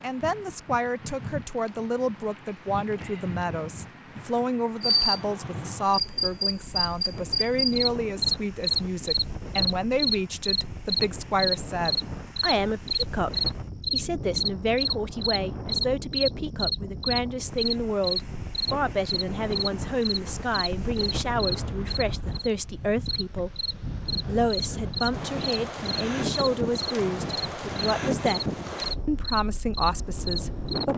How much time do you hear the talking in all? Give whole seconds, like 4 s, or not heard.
30 s.